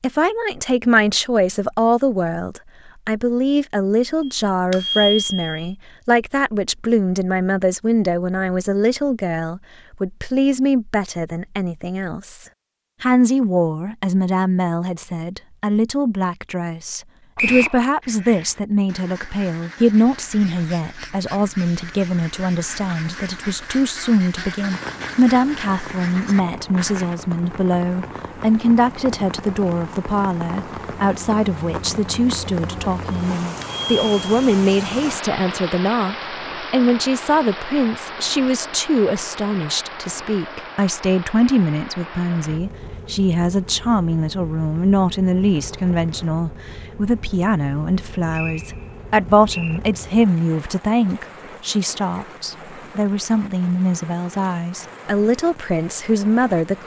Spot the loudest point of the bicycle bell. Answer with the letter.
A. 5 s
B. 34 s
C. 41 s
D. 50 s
A.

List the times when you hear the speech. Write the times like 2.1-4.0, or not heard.
0.0-56.8.